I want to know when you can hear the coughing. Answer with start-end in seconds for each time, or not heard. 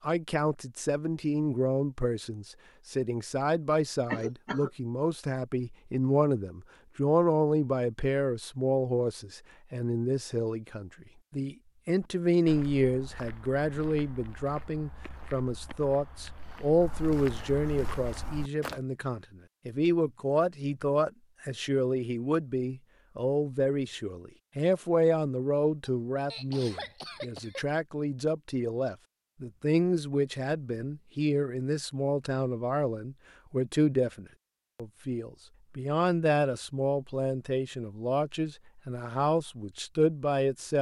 4.0-4.7, 25.9-27.8.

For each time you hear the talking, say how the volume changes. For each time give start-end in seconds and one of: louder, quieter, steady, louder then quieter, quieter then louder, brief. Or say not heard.
0.0-40.7 steady.